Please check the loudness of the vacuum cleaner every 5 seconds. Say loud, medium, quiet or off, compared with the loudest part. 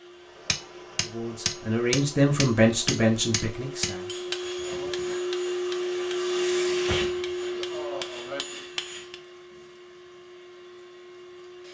medium, loud, quiet.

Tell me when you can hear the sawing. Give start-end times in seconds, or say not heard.
not heard.